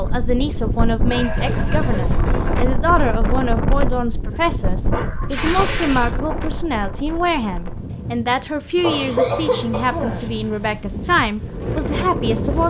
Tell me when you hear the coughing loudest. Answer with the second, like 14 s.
9 s.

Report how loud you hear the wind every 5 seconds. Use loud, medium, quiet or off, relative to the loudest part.
loud, medium, loud.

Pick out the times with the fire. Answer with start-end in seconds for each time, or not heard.
not heard.